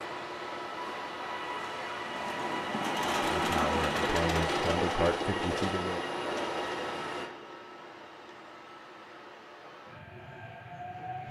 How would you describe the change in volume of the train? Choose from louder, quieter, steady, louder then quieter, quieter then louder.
louder then quieter.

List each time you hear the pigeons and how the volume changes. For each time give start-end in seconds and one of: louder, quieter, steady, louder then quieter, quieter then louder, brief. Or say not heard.
not heard.